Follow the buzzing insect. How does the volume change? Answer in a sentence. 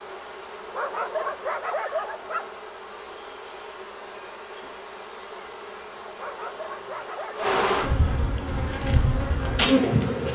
The loudness of the buzzing insect goes up.